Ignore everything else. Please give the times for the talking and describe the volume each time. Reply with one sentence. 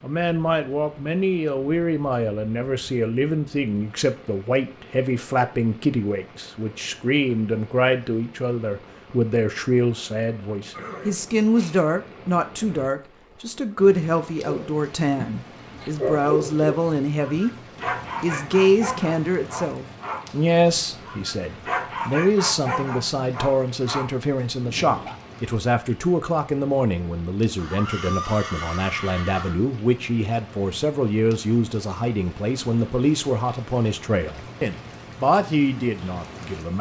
You can hear the talking from 0.0 to 17.6 s, at a steady volume; and from 18.2 to 36.7 s, at a steady volume.